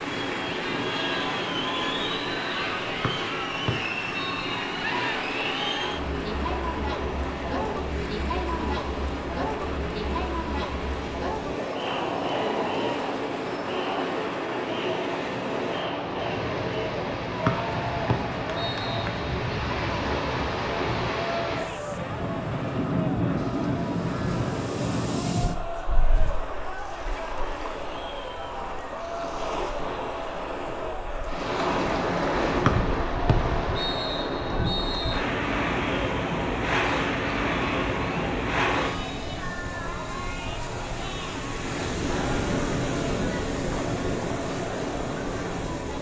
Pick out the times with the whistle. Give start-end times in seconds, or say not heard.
3.0-4.5, 17.4-19.1, 32.6-35.2.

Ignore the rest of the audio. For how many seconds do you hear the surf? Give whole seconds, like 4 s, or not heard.
46 s.